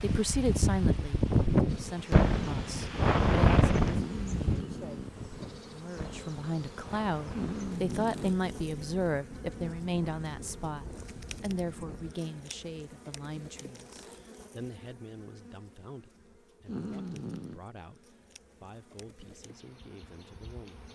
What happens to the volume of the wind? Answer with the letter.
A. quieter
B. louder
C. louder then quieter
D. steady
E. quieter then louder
A.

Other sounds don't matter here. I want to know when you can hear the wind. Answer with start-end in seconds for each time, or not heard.
0.0-12.2.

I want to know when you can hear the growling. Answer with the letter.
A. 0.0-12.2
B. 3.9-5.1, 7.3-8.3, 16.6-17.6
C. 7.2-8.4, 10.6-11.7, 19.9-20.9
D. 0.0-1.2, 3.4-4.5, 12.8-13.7
B.